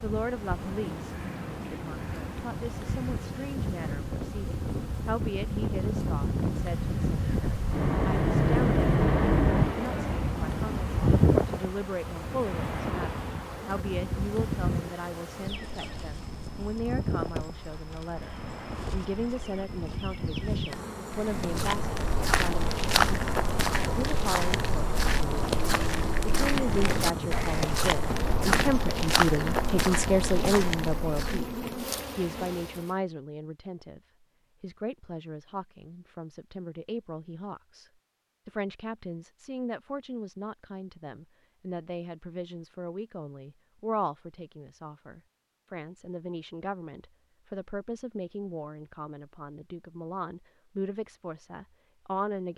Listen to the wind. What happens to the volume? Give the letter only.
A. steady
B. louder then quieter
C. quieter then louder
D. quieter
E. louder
B.